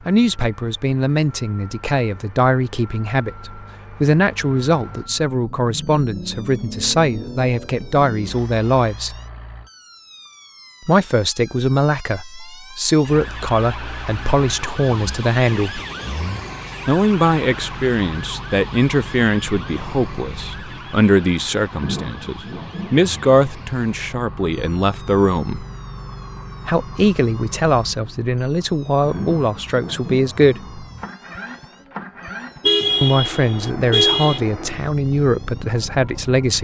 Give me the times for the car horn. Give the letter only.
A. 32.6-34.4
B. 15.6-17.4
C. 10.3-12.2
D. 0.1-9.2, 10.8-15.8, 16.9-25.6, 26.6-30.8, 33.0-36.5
A.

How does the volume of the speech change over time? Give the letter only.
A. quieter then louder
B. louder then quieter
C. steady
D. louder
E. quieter
C.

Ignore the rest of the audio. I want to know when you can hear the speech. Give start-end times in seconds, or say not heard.
0.1-9.2, 10.8-15.8, 16.9-25.6, 26.6-30.8, 33.0-36.5.